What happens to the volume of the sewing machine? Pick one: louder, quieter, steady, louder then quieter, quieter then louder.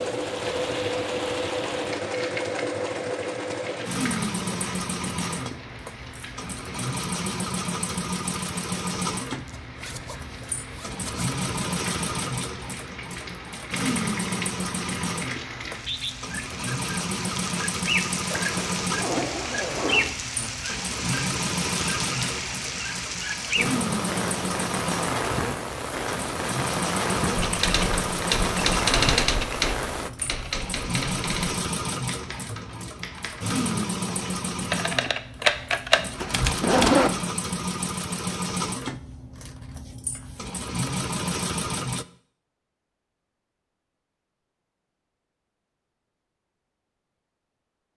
steady.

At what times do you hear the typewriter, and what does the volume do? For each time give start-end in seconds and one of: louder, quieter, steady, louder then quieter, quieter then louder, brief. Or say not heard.
27.3-37.0 quieter then louder.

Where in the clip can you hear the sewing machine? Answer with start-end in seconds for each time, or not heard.
0.0-42.0.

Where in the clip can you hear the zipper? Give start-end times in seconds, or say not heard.
9.3-11.3, 18.3-20.1, 36.1-37.2.